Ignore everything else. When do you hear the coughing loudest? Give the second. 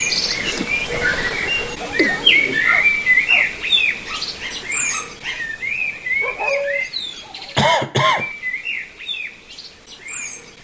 8 s.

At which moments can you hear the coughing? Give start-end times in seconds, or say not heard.
0.3-2.7, 7.5-8.3.